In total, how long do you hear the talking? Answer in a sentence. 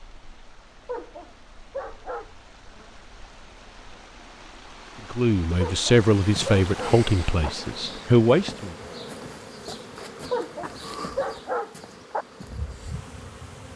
You can hear the talking for 4 seconds altogether.